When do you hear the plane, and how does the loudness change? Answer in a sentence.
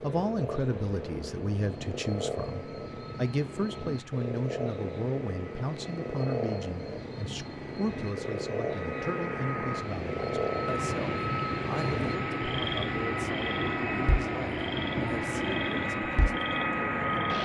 You can hear the plane from 0.0 to 17.3 s, getting louder.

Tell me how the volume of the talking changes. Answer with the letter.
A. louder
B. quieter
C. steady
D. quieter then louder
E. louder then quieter
B.